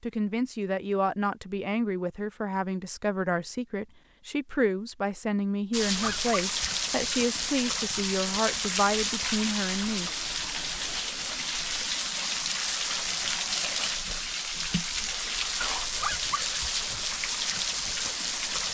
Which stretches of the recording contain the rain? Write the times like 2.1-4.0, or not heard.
5.7-18.7.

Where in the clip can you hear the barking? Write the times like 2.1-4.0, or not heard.
6.0-6.7, 15.9-16.7.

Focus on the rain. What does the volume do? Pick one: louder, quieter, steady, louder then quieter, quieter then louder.
steady.